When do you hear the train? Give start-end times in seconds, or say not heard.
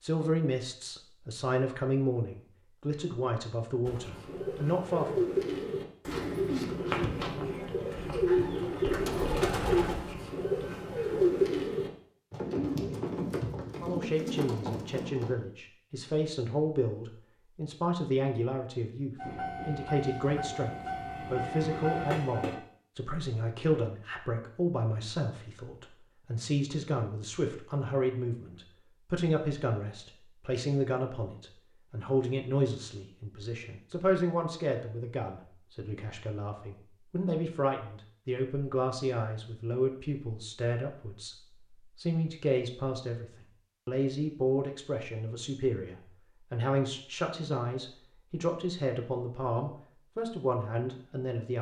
19.1-22.6.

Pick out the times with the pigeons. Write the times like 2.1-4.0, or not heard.
3.9-15.3.